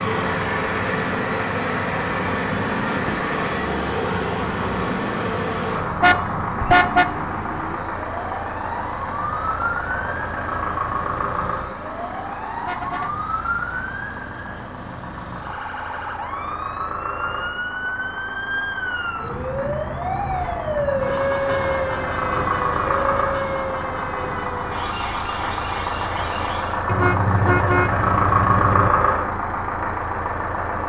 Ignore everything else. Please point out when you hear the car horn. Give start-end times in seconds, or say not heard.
6.0-7.0, 12.6-13.1, 26.9-28.9.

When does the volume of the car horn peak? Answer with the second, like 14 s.
7 s.